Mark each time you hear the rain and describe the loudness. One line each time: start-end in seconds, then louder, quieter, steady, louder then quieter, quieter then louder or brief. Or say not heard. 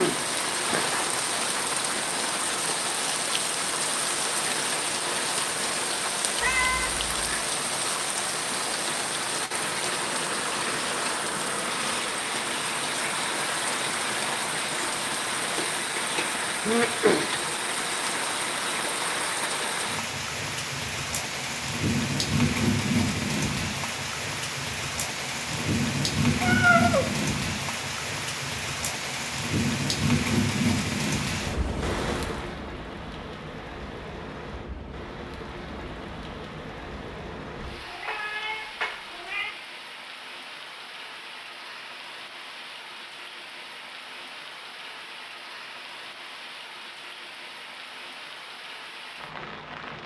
0.0-50.0 quieter.